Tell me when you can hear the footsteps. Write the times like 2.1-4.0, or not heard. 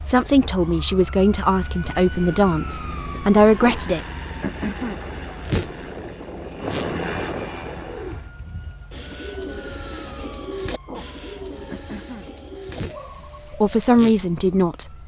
not heard.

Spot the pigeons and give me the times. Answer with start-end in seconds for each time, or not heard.
7.6-13.9.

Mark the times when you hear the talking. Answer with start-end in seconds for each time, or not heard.
0.1-4.0, 13.5-14.9.